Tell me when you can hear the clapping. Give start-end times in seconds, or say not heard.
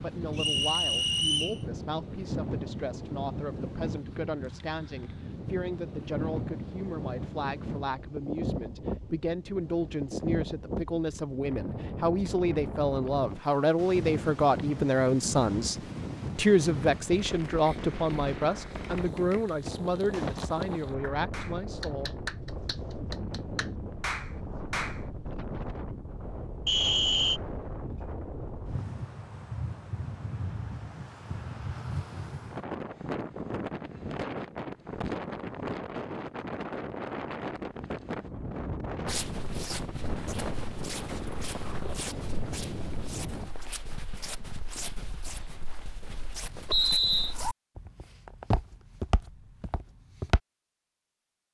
18.8-25.0.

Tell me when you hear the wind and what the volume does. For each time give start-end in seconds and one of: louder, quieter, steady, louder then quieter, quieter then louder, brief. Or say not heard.
0.0-43.5 steady.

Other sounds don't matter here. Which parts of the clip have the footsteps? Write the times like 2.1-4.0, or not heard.
39.0-50.4.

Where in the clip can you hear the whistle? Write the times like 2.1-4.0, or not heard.
0.3-1.6, 26.6-27.4, 46.6-47.4.